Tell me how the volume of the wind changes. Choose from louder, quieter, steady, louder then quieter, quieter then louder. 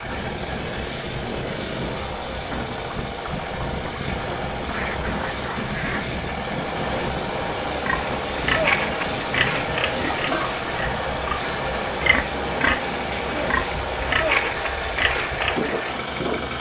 steady.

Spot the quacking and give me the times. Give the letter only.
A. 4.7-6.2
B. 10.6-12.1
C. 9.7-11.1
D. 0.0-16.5
A.